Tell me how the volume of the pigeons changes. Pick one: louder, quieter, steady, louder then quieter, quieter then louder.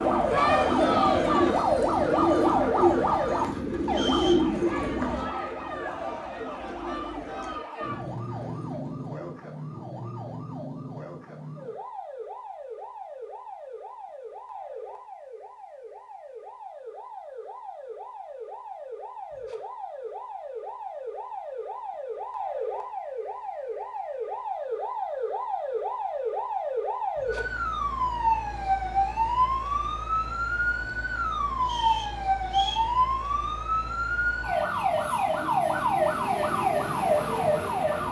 quieter.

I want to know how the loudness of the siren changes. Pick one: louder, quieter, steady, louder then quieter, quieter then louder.
quieter then louder.